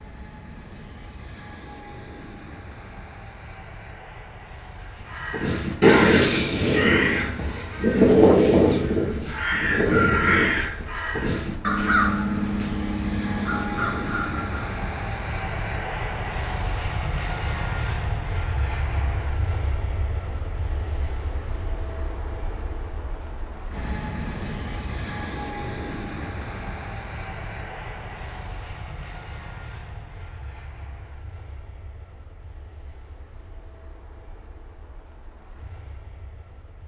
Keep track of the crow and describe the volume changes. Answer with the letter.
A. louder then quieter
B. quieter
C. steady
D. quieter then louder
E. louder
B.